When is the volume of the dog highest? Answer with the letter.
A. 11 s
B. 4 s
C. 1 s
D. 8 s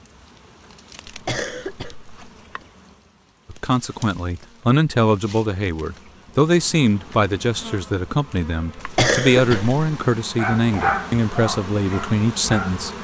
A.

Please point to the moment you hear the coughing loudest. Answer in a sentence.
The volume of the coughing peaks at 9 seconds.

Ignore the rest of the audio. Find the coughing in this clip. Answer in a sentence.
You can hear the coughing from 1.1 to 2.6 s and from 8.8 to 9.8 s.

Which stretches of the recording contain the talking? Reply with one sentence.
The talking can be heard from 3.5 to 12.9 s.